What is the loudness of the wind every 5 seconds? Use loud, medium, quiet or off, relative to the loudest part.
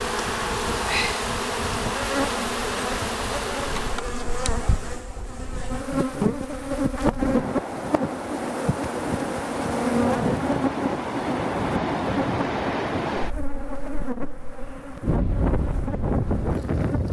quiet, medium, loud, loud.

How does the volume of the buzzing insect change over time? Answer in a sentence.
The loudness of the buzzing insect goes down.